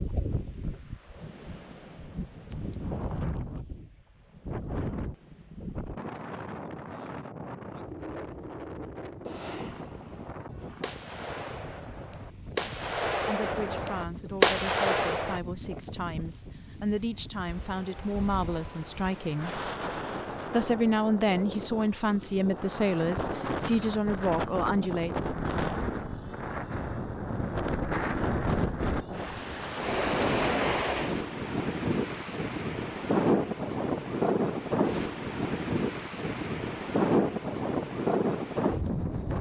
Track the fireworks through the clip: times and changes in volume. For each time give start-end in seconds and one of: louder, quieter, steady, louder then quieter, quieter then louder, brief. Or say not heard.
9.1-15.4 louder.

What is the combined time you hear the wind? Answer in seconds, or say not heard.
39 s.